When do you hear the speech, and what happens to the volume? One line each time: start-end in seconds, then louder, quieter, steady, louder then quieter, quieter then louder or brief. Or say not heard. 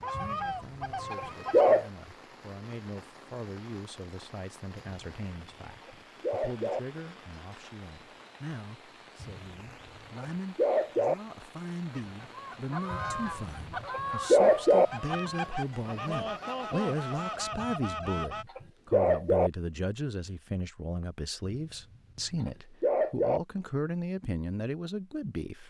0.0-25.6 louder.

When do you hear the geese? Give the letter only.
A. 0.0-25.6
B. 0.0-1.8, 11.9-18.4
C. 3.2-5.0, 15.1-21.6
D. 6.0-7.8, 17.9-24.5
B.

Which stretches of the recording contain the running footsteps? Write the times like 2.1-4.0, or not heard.
not heard.